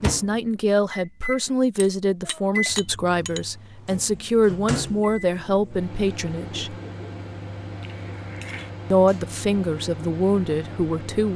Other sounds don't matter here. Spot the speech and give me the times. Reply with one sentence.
You can hear the speech from 0.0 to 6.8 s and from 8.9 to 11.3 s.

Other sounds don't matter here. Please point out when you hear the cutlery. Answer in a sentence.
You can hear the cutlery from 1.8 to 3.4 s and from 7.8 to 8.7 s.